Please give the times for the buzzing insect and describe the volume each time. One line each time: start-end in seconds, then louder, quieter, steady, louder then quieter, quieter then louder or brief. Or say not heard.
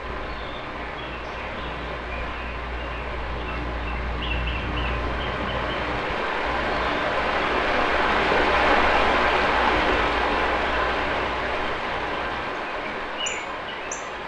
not heard.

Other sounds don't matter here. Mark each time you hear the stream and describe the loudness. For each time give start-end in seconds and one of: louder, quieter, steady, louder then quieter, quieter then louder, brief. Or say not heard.
0.0-14.2 louder then quieter.